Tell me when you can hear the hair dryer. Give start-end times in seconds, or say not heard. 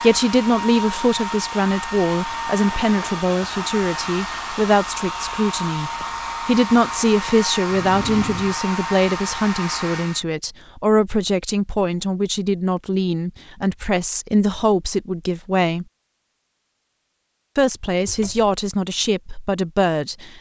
0.0-10.2.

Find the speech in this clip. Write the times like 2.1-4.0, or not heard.
0.0-15.8, 17.6-20.3.